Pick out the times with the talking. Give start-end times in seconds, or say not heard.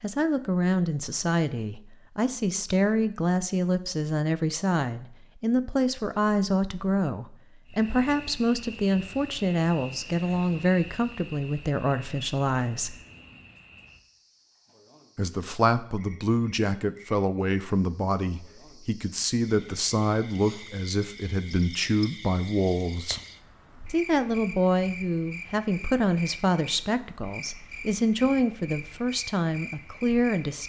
0.0-12.9, 15.2-23.2, 23.9-30.6.